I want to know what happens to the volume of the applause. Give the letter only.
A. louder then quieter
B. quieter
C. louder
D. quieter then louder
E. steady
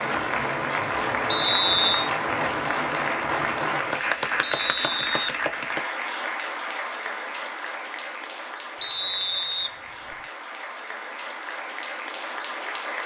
B.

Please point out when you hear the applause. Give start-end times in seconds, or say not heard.
0.0-13.0.